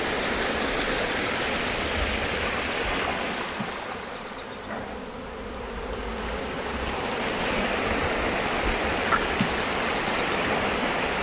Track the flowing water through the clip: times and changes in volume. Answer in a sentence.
You can hear the flowing water from 0.0 to 11.1 s, getting quieter then louder.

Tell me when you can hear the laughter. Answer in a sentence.
The laughter can't be heard in this clip.